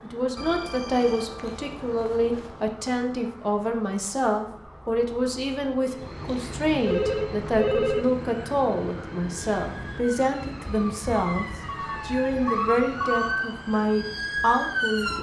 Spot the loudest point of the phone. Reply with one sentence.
The loudest moment of the phone is at 8 seconds.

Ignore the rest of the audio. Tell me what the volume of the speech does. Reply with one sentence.
The volume of the speech stays about the same.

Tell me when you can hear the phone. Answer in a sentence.
You can hear the phone from 0.3 to 2.7 s, from 6.2 to 8.1 s and from 11.2 to 13.4 s.